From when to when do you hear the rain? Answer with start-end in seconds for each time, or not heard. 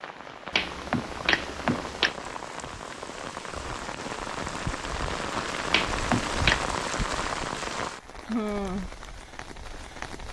0.0-10.2.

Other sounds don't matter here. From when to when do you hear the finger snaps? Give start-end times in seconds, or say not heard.
0.5-2.1, 5.7-6.6.